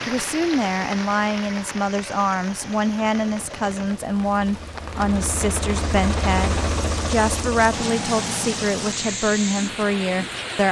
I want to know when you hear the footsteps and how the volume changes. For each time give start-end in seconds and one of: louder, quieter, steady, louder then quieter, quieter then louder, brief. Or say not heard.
not heard.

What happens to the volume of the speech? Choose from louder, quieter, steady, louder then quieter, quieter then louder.
steady.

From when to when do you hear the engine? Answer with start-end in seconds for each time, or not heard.
0.0-10.5.